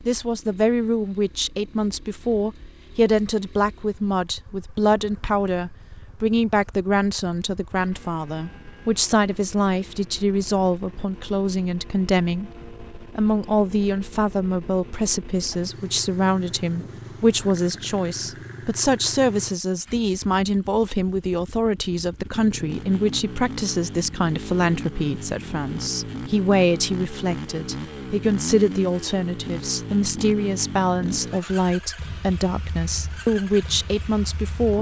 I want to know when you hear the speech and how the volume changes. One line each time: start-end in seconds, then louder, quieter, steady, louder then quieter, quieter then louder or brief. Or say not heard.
0.1-34.7 steady.